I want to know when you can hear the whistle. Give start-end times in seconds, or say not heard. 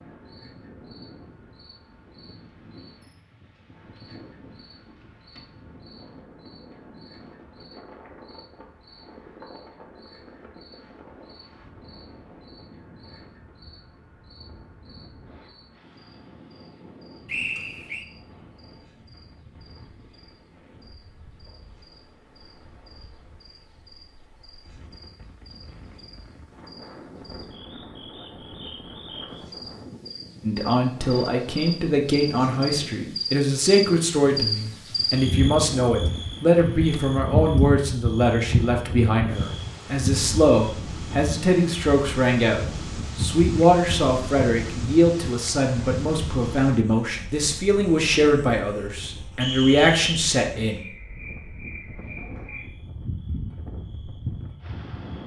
17.2-18.1, 49.4-50.1.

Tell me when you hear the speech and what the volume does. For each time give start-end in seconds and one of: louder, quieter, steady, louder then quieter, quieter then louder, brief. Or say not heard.
30.4-50.8 steady.